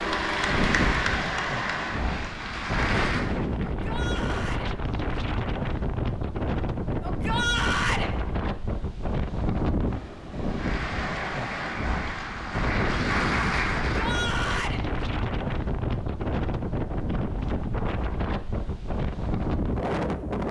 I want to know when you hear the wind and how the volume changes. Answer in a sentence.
The wind can be heard from 0.0 to 20.4 s, at a steady volume.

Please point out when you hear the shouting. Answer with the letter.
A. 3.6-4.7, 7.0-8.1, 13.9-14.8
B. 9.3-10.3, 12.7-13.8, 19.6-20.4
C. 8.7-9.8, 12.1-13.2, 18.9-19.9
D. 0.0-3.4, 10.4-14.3
A.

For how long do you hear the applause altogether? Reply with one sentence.
The applause can be heard for 7 seconds in total.